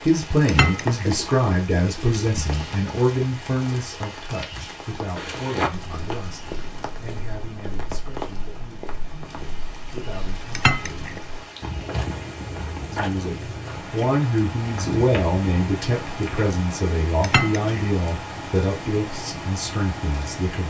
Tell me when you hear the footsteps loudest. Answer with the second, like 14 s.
6 s.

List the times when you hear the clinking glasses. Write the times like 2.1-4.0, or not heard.
0.5-1.1, 10.6-11.2, 17.2-17.7.